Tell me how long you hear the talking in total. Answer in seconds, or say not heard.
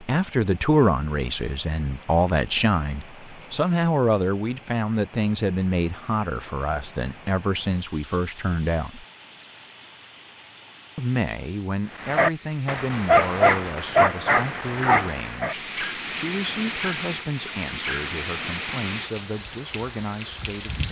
19 s.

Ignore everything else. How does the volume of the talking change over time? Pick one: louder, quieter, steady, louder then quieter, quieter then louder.
quieter.